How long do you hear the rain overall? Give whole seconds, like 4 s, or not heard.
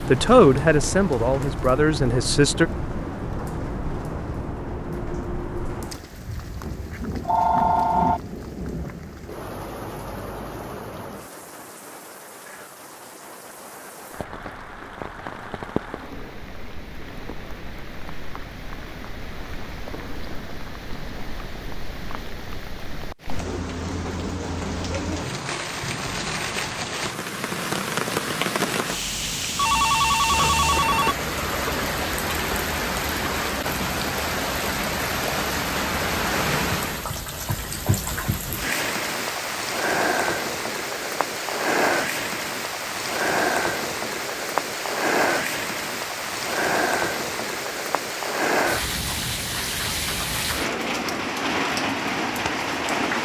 53 s.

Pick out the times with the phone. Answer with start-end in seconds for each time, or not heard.
7.2-8.2, 29.6-31.1.